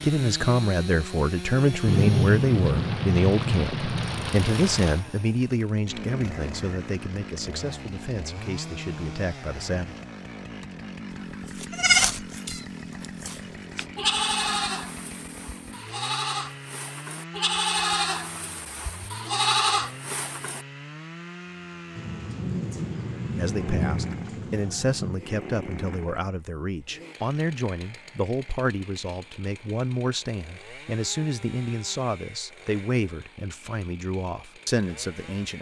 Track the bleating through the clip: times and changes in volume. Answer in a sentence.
You can hear the bleating from 11.3 to 20.6 s, getting quieter then louder.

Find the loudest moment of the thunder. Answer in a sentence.
The loudest moment of the thunder is at 2 seconds.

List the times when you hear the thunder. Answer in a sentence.
You can hear the thunder from 1.9 to 5.0 s and from 21.9 to 25.2 s.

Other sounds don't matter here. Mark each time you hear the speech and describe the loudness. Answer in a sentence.
The speech can be heard from 0.0 to 10.0 s, getting quieter; and from 23.2 to 35.5 s, at a steady volume.